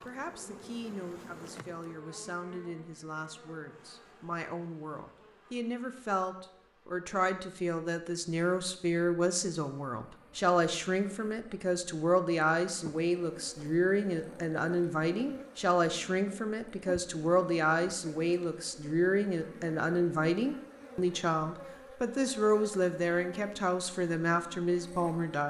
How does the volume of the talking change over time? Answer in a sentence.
The volume of the talking goes up.